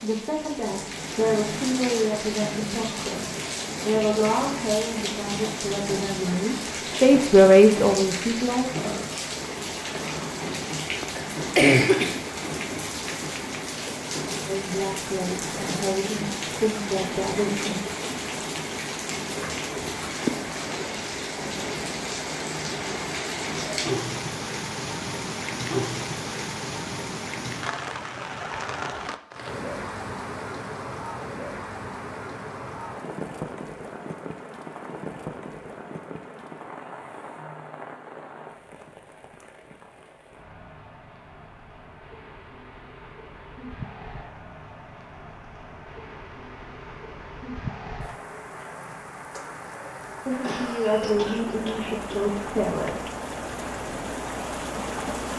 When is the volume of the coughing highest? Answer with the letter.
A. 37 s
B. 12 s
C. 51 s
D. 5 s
B.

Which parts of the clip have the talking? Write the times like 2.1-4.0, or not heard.
0.0-9.0, 14.4-17.8, 50.2-53.0.